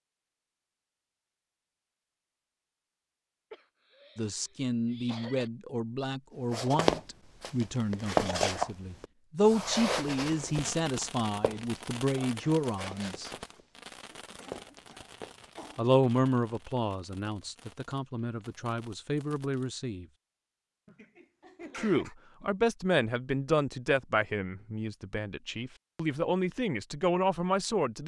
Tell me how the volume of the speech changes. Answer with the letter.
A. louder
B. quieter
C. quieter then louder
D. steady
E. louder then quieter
D.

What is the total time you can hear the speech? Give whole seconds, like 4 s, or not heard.
20 s.